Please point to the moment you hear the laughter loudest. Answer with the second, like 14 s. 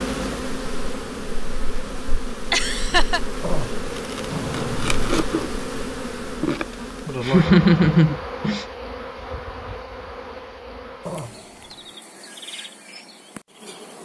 8 s.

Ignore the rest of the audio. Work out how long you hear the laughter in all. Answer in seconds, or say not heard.
2 s.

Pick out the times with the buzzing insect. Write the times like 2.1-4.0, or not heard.
0.0-13.9.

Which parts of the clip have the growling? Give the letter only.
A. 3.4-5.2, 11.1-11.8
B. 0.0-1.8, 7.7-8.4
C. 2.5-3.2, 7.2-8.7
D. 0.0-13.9
A.